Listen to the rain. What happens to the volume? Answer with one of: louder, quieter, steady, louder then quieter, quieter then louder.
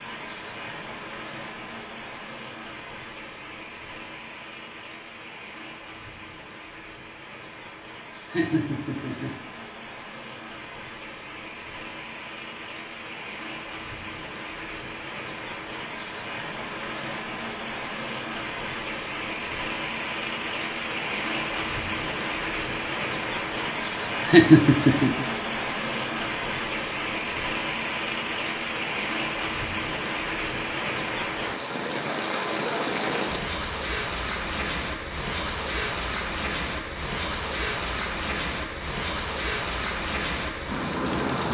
louder.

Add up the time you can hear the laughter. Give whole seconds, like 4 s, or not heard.
2 s.